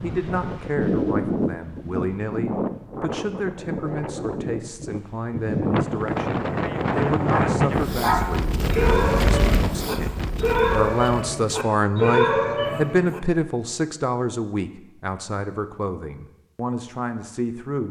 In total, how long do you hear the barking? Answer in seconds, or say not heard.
6 s.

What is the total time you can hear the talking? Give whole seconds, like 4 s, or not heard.
18 s.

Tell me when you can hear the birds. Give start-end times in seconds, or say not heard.
not heard.